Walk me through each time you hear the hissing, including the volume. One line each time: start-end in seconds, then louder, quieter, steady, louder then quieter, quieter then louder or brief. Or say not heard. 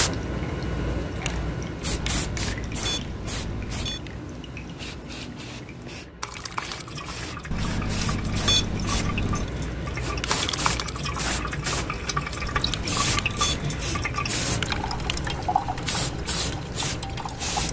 0.0-17.6 quieter then louder.